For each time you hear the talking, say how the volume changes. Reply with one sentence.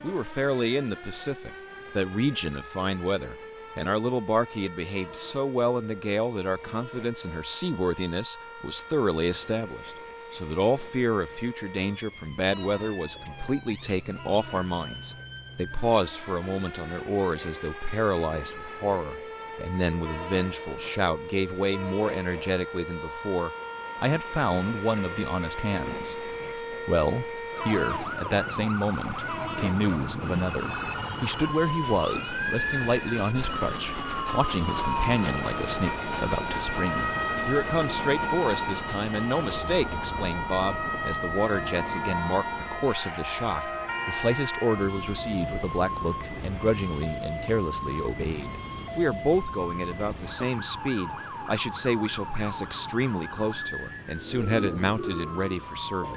You can hear the talking from 0.0 to 56.1 s, at a steady volume.